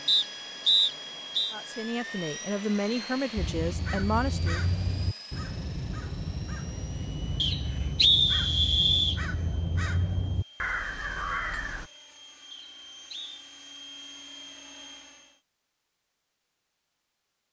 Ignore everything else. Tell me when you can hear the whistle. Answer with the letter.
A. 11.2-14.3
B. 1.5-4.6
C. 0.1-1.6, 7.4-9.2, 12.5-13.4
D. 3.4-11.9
C.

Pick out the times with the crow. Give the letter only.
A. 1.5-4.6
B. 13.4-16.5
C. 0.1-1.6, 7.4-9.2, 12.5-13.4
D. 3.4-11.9
D.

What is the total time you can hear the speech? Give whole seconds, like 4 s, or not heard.
3 s.